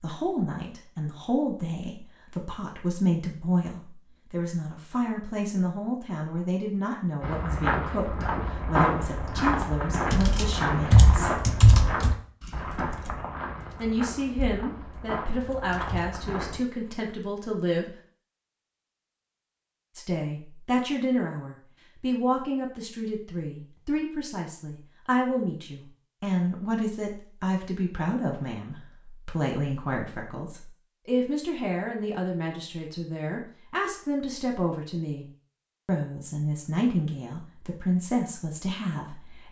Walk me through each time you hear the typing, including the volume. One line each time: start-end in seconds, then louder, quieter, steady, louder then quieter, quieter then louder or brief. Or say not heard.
10.1-16.1 quieter.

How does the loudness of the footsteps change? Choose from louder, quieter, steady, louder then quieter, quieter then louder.
quieter.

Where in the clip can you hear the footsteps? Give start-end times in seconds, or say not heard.
7.2-16.6.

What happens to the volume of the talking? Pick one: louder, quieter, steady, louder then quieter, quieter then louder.
steady.